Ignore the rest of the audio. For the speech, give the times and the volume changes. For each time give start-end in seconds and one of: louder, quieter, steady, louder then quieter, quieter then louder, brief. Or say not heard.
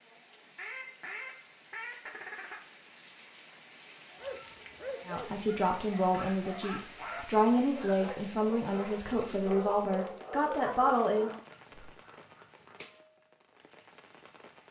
5.0-11.4 steady.